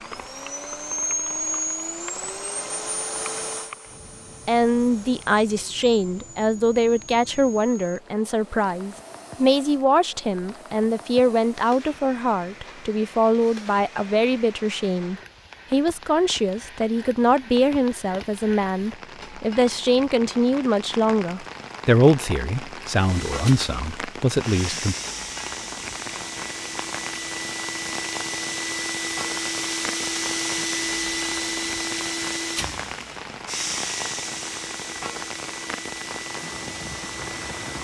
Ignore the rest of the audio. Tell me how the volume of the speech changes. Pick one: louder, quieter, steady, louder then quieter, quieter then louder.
steady.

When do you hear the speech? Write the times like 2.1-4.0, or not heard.
4.5-24.9.